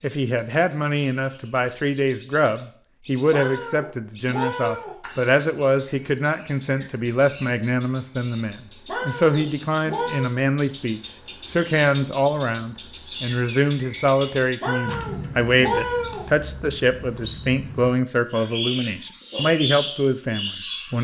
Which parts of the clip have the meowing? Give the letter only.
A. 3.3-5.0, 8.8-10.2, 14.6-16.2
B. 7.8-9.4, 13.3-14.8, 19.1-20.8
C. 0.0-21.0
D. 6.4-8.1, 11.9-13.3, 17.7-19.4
A.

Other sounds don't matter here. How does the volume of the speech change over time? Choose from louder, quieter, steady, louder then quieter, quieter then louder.
steady.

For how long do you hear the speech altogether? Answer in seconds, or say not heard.
21 s.